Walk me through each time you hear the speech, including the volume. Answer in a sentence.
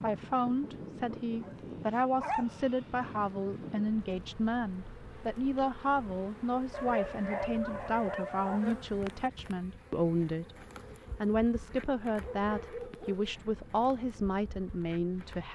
You can hear the speech from 0.0 to 15.4 s, at a steady volume.